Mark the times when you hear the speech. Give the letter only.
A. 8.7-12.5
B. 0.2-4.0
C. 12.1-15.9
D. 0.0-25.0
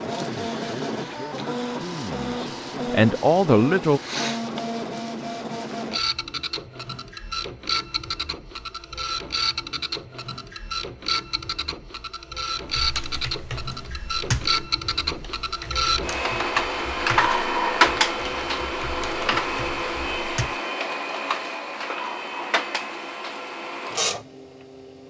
B.